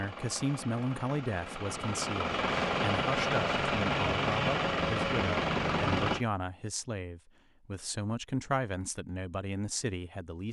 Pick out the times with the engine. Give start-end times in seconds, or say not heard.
0.0-6.2.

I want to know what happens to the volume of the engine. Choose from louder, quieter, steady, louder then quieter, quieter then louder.
louder.